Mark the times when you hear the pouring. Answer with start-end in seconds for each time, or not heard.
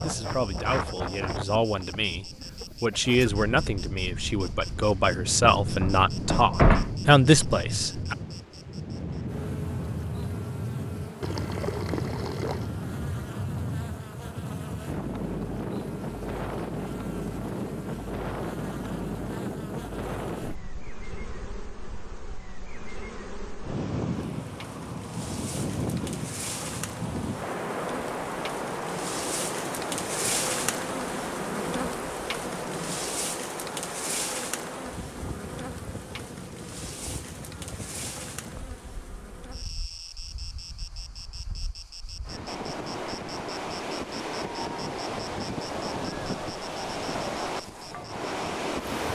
11.2-12.7.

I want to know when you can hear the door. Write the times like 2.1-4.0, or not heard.
5.6-7.0.